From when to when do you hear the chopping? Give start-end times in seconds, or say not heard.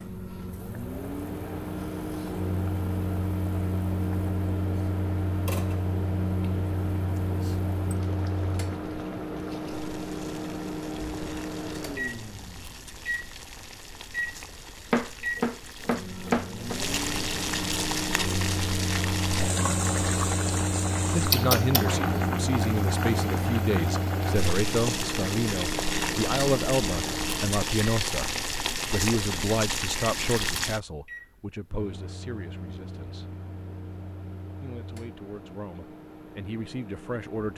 14.9-16.8.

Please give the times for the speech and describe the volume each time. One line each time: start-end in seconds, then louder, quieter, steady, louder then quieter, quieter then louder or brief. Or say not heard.
21.1-33.4 quieter
34.6-37.5 brief.